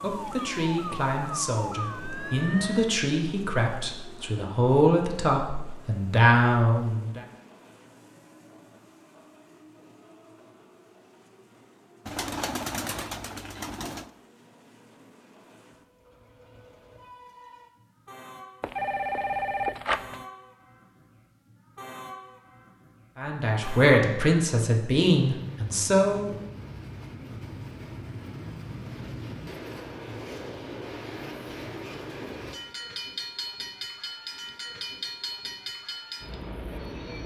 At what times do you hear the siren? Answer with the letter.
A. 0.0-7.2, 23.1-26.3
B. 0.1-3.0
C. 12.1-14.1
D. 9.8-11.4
B.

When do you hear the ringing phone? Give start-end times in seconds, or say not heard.
18.6-20.2.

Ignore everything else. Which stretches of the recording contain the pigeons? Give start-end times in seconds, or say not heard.
12.1-14.1.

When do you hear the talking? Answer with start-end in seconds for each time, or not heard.
0.0-7.2, 23.1-26.3.